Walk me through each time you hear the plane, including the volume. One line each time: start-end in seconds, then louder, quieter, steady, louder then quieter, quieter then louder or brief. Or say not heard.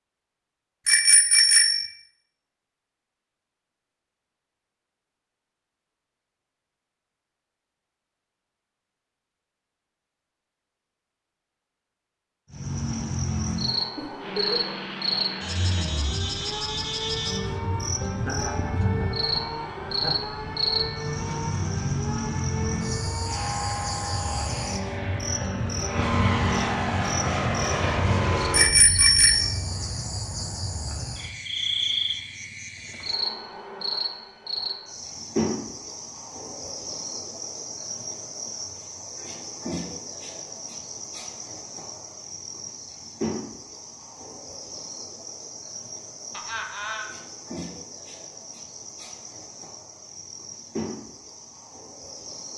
14.2-28.8 louder.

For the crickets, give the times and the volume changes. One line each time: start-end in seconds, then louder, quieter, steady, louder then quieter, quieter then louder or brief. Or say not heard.
12.5-52.5 quieter.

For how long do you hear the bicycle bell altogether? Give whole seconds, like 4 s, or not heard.
2 s.